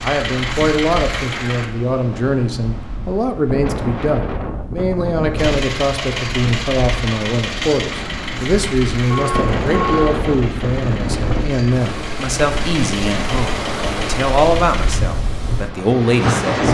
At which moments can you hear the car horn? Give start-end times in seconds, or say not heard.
9.1-10.2.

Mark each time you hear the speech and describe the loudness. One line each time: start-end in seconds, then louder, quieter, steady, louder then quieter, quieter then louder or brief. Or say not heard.
0.0-16.6 steady.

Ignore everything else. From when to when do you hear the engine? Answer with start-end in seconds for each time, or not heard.
0.0-1.7, 5.3-15.0.